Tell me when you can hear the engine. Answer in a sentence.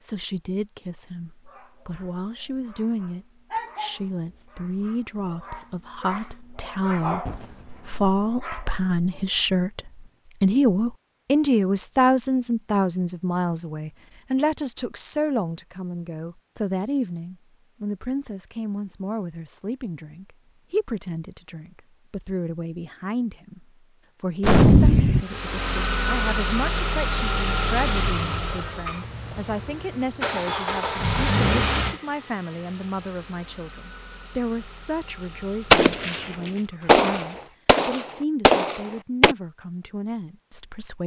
You can hear the engine from 25.2 to 37.6 s.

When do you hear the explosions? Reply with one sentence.
The explosions can be heard from 7.2 to 8.1 s, from 24.4 to 25.2 s and from 35.7 to 39.4 s.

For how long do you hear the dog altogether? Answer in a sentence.
The dog can be heard for 8 seconds in total.